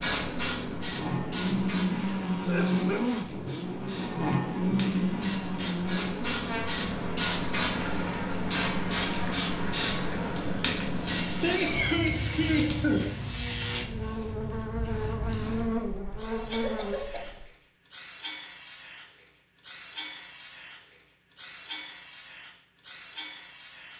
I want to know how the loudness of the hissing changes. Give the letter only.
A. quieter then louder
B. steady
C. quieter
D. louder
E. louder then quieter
E.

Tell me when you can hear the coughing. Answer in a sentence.
The coughing can be heard from 2.4 to 3.0 s, from 11.2 to 13.1 s and from 16.5 to 17.4 s.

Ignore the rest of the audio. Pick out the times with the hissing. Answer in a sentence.
You can hear the hissing from 0.0 to 23.9 s.